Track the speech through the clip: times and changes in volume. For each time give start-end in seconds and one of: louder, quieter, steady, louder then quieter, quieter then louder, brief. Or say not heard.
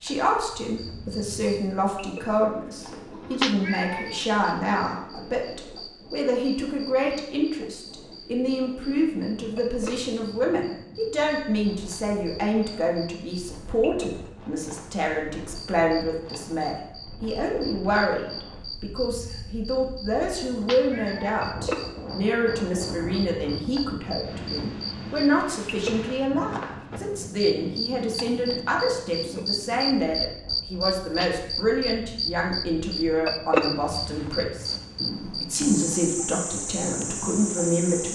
0.0-38.1 steady.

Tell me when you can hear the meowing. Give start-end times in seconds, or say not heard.
3.1-4.2, 20.4-21.2, 31.1-31.5.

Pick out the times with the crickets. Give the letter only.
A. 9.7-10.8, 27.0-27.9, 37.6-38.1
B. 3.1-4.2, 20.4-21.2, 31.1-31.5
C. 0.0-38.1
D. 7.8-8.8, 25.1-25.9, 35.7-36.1
C.